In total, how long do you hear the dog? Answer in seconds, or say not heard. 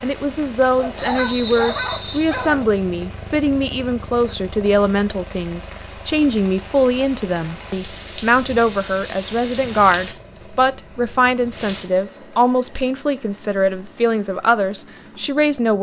2 s.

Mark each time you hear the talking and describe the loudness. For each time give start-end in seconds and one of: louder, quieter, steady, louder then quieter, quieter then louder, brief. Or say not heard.
0.0-15.7 steady.